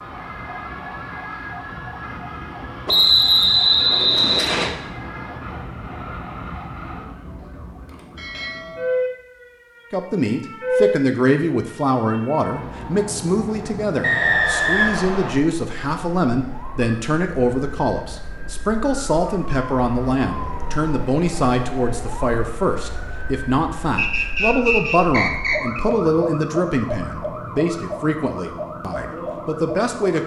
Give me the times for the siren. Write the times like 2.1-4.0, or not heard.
0.0-30.2.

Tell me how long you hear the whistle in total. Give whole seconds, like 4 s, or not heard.
5 s.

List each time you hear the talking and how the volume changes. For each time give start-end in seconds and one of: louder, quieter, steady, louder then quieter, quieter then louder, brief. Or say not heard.
9.9-30.2 steady.